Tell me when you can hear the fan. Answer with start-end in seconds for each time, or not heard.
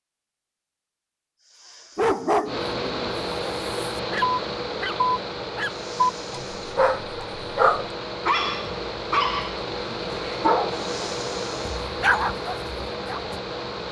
2.5-13.8.